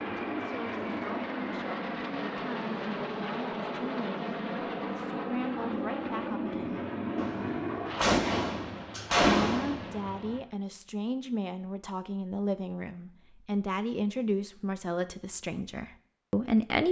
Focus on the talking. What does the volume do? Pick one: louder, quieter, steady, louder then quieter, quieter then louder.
louder.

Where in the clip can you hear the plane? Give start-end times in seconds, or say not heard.
0.0-10.2.